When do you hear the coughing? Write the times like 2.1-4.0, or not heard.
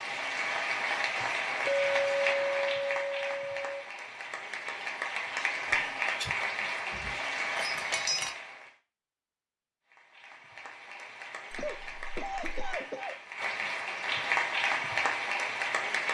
5.7-6.3, 11.6-13.2.